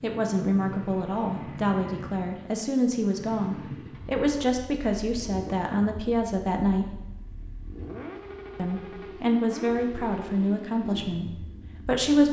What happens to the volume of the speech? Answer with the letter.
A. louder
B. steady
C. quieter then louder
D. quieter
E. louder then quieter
B.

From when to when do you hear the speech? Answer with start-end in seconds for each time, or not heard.
0.0-7.0, 8.6-12.2.